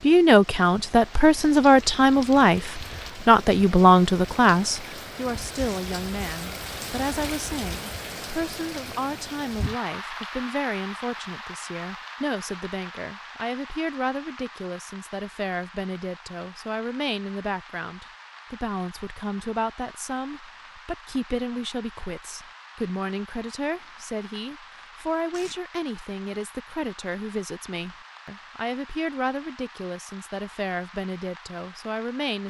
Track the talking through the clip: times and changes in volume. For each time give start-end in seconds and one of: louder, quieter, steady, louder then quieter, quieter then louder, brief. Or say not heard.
0.0-32.4 quieter.